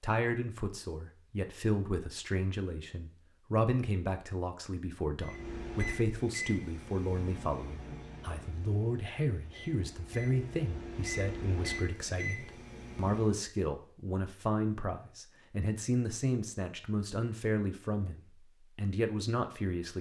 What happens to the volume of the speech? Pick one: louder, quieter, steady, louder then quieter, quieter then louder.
steady.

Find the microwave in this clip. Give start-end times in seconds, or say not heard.
5.2-13.4.